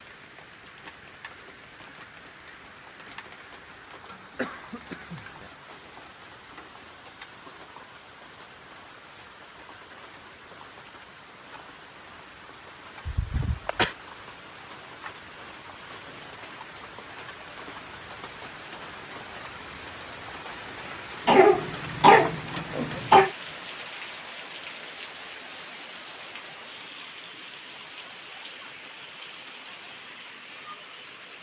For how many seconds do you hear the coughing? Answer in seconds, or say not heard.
4 s.